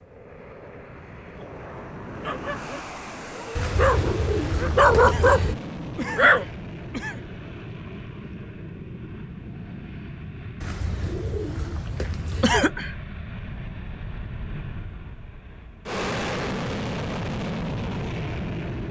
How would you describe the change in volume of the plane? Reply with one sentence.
The volume of the plane goes up.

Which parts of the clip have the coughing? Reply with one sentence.
You can hear the coughing from 5.0 to 7.2 s and from 12.4 to 12.9 s.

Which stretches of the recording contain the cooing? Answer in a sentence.
The cooing can be heard from 3.5 to 5.5 s and from 10.6 to 12.6 s.